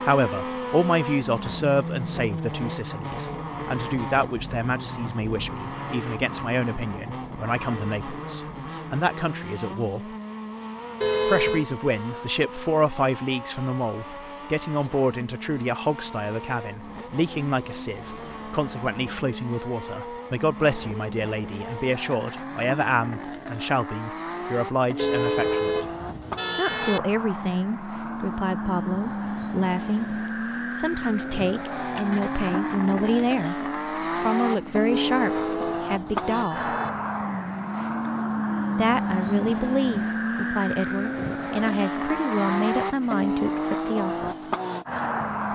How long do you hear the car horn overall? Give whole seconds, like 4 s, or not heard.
5 s.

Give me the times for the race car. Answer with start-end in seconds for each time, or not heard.
0.0-45.5.